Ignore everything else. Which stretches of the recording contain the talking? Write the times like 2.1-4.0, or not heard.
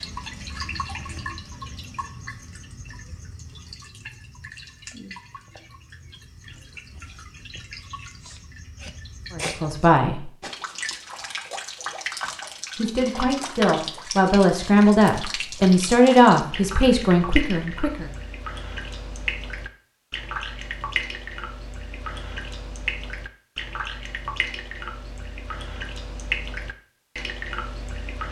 9.3-10.3, 12.8-18.1.